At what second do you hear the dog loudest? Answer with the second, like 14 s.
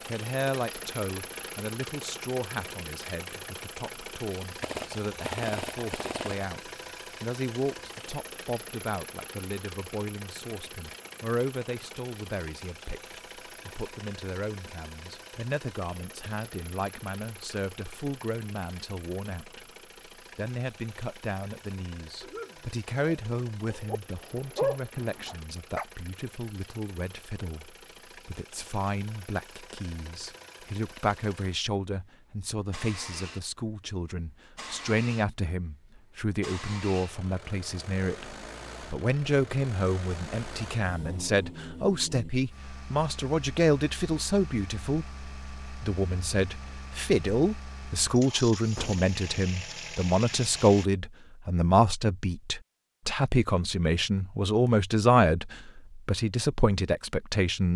25 s.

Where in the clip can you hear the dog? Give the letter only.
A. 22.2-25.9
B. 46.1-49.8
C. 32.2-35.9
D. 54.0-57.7
A.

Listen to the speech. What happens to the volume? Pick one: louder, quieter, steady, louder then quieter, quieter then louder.
louder.